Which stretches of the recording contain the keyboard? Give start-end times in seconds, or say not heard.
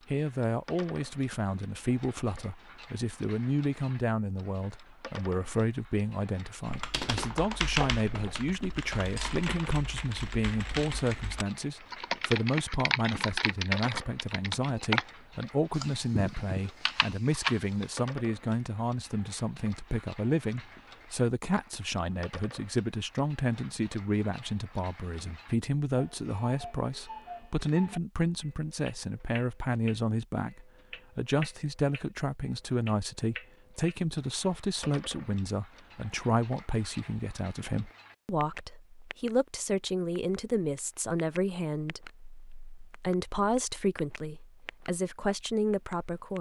6.7-17.9.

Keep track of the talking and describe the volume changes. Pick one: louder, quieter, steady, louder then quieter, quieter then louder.
steady.